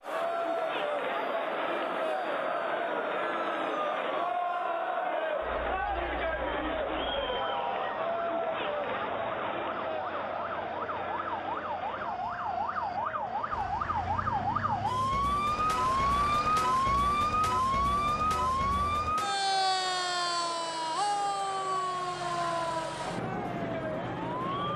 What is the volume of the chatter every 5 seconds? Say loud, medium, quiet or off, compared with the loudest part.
loud, loud, medium, quiet, medium.